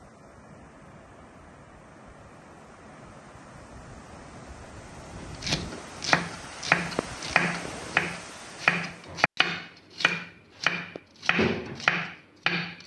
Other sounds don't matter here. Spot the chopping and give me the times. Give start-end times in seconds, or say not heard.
5.2-12.8.